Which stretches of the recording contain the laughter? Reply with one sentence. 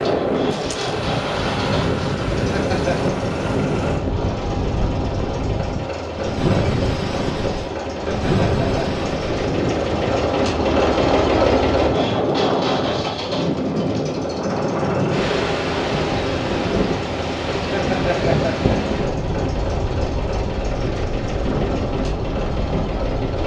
You can hear the laughter from 2.4 to 3.1 s, from 7.8 to 8.8 s and from 17.6 to 18.7 s.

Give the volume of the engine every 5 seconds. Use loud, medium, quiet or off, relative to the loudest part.
medium, medium, loud, medium, medium.